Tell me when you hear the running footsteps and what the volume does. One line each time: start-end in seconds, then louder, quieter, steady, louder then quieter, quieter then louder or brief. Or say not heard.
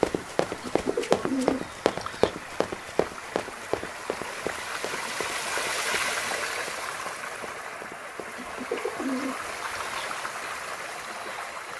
0.0-9.1 quieter.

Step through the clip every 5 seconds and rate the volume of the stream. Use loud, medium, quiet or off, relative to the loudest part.
medium, loud, loud.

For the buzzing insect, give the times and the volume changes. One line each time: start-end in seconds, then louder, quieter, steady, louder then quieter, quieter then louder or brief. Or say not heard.
not heard.